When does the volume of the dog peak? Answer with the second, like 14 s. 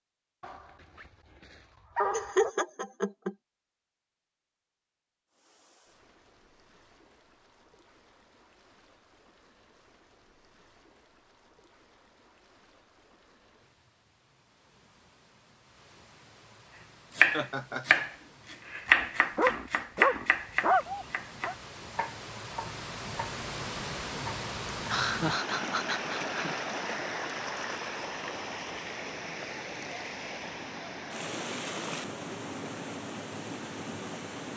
21 s.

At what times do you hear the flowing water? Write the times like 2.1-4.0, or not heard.
5.2-34.5.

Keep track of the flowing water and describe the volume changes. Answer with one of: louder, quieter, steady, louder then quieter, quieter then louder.
louder.